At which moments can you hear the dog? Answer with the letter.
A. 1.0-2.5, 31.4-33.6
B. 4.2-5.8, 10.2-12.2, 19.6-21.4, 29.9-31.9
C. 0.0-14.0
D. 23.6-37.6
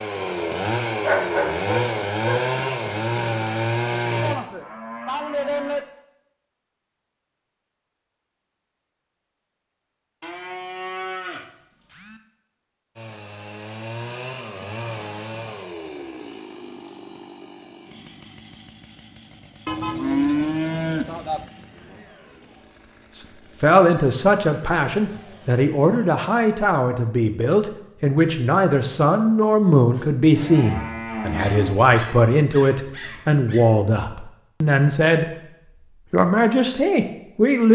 A.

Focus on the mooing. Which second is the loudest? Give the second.
20 s.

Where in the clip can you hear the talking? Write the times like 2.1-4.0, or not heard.
23.6-37.6.